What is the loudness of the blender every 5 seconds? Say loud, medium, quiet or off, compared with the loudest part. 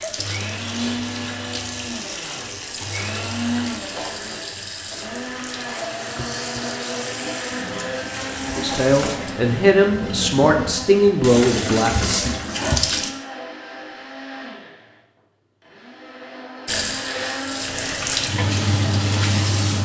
loud, loud, medium, loud.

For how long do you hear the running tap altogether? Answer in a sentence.
You can hear the running tap for 16 seconds altogether.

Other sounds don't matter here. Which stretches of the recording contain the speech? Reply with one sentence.
You can hear the speech from 8.6 to 12.3 s.